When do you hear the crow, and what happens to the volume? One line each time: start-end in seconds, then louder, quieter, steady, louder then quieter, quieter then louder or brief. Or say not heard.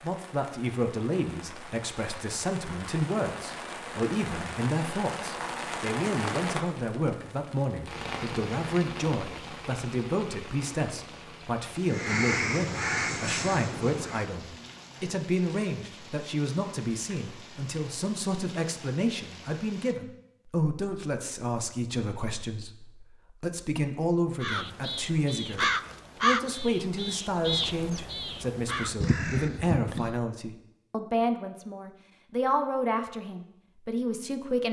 11.8-14.2 brief
24.4-30.1 quieter then louder.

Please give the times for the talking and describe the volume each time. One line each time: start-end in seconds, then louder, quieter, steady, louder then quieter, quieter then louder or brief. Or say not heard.
0.0-34.6 steady.